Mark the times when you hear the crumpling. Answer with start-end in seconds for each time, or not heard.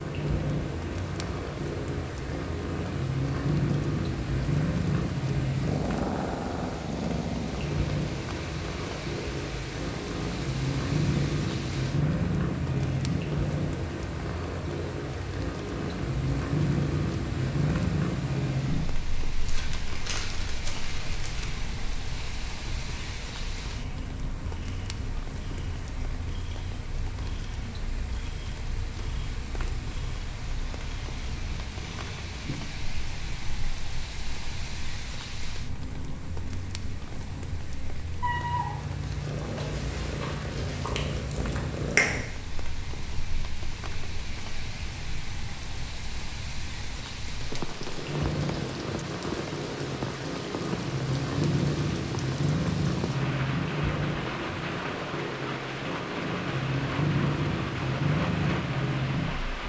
19.4-21.4.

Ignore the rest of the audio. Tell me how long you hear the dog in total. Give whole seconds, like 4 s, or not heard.
not heard.